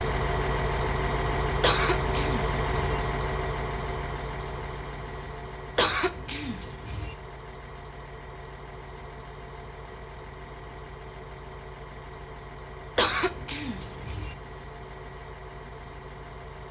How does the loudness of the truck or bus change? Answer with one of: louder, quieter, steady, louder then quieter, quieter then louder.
quieter.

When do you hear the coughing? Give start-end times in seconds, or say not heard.
1.6-2.8, 5.8-7.2, 12.9-14.3.